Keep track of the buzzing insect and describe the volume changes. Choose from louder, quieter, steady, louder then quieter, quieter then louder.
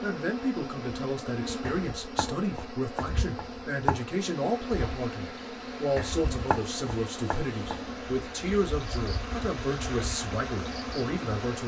steady.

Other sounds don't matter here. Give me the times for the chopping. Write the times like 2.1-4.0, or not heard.
1.6-4.0, 6.0-7.9.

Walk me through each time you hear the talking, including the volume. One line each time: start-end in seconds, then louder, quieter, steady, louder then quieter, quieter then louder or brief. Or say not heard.
0.0-11.6 steady.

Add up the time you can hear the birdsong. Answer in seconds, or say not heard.
not heard.